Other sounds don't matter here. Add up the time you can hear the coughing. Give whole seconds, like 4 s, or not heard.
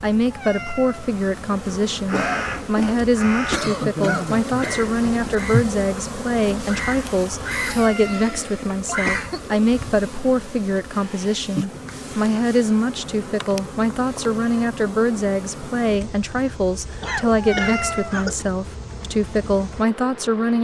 5 s.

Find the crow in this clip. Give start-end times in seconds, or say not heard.
2.0-3.6, 4.5-5.7, 6.7-7.8, 8.9-9.3.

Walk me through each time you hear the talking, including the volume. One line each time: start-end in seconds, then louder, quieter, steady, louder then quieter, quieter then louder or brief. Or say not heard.
0.0-20.5 steady.